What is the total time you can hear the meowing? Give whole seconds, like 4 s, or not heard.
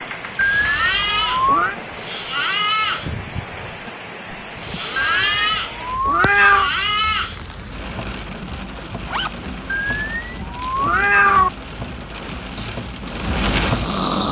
5 s.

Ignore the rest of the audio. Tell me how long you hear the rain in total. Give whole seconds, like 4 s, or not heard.
14 s.